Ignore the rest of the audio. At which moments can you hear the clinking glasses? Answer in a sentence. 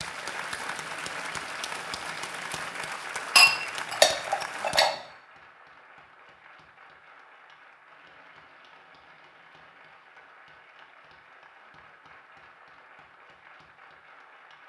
You can hear the clinking glasses from 3.4 to 5.0 s.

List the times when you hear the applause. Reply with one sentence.
The applause can be heard from 0.0 to 14.6 s.